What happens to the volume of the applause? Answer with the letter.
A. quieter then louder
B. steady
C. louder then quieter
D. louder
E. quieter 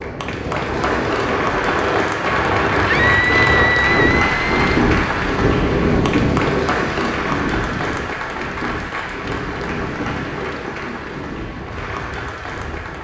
E.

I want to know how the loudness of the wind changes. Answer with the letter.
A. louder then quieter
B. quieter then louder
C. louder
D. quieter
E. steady
D.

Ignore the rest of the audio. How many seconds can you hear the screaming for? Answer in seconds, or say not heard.
2 s.